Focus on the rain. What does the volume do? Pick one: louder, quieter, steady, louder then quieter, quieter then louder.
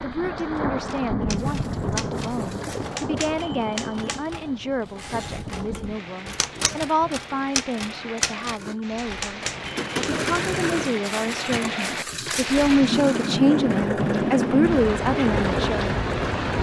quieter then louder.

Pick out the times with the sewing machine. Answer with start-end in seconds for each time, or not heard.
8.6-16.5.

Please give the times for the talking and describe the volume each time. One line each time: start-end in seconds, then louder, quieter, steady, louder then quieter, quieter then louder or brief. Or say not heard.
0.0-15.9 louder.